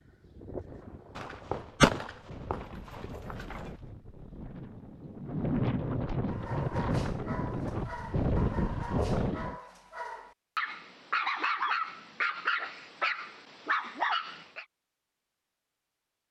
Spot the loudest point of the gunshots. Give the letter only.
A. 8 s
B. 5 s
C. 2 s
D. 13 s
C.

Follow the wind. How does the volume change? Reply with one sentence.
The volume of the wind goes up.